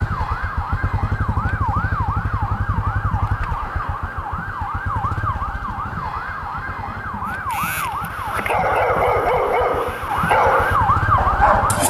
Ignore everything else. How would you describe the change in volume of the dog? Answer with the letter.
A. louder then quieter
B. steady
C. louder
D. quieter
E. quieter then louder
A.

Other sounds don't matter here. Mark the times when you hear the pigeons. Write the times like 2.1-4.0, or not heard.
not heard.